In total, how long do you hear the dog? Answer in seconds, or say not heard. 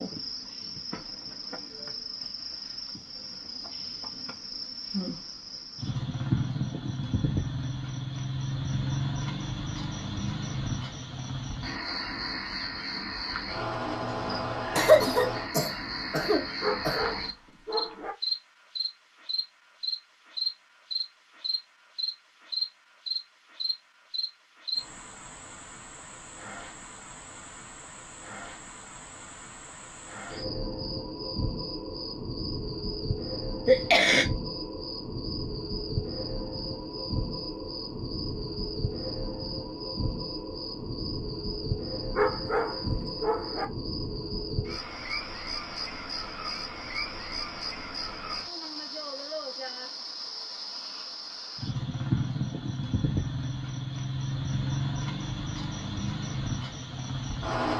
3 s.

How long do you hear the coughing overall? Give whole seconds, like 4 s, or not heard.
3 s.